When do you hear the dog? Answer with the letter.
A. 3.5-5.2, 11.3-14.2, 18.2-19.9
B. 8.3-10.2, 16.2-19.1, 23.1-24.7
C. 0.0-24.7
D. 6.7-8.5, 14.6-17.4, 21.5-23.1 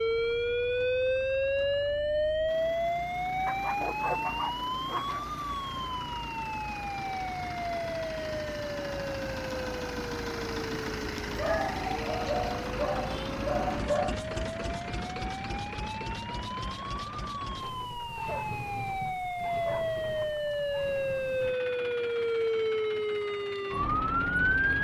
A.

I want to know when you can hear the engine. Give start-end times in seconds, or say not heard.
0.0-24.7.